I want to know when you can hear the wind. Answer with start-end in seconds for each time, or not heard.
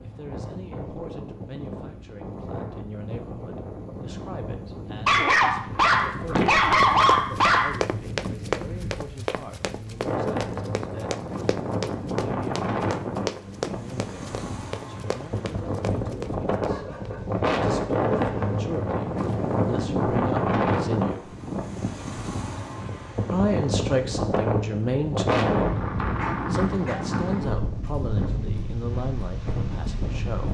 0.0-30.5.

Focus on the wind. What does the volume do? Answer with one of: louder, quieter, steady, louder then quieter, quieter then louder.
louder.